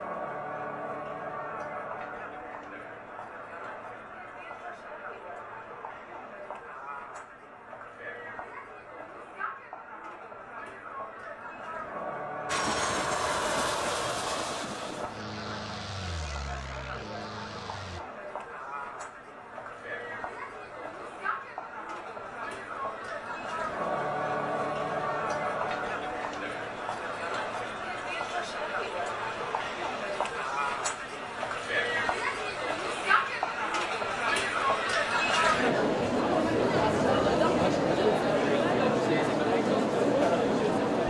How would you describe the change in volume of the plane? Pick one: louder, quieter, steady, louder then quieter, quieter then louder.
quieter.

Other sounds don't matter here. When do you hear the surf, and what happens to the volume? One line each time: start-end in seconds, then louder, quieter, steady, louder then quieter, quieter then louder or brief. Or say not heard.
not heard.